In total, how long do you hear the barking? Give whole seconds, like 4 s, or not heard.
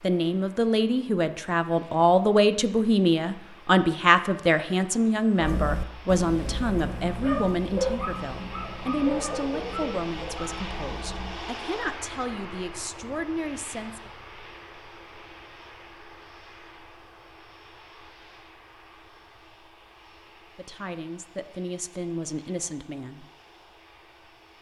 6 s.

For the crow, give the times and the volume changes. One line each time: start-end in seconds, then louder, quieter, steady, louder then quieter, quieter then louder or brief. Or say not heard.
not heard.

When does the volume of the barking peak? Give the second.
8 s.